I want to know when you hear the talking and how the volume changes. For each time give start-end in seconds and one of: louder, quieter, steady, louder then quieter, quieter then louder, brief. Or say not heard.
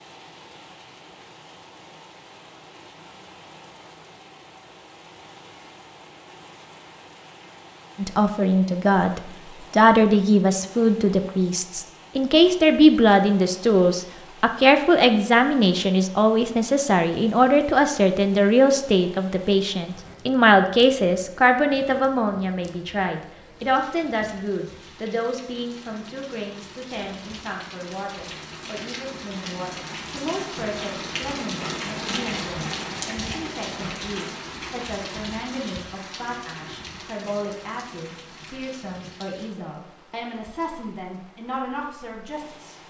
8.0-42.8 quieter.